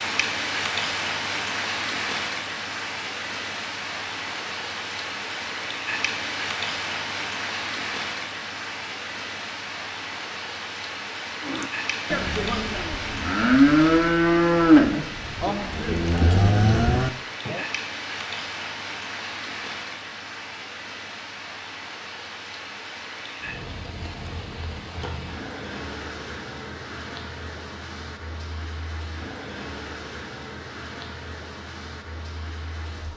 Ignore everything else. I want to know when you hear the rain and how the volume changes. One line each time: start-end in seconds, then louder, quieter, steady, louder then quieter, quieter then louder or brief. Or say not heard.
0.0-33.1 quieter.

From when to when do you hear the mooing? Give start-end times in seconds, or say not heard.
11.4-17.6.